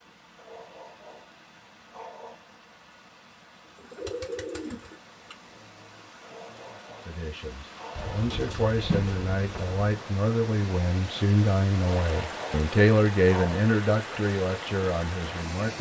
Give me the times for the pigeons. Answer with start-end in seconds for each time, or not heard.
3.6-5.3, 8.0-9.8.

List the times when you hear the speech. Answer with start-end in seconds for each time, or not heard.
7.0-15.7.